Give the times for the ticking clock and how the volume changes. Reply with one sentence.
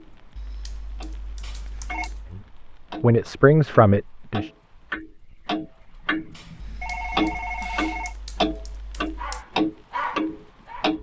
You can hear the ticking clock briefly from 0.0 to 2.2 s; and from 2.9 to 10.9 s, getting louder.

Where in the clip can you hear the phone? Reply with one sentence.
You can hear the phone from 1.4 to 2.1 s and from 6.3 to 8.2 s.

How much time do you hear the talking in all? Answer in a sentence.
The talking can be heard for 2 seconds in total.